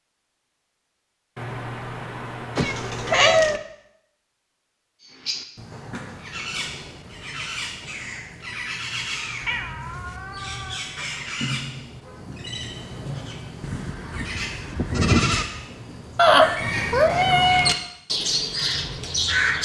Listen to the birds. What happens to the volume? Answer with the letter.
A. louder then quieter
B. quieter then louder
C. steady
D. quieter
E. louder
E.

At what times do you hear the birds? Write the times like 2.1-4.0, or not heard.
5.0-19.5.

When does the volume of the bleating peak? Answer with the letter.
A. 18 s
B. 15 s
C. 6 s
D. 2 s
B.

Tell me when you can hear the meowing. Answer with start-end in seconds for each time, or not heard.
2.5-3.6, 9.4-10.8, 16.1-17.8.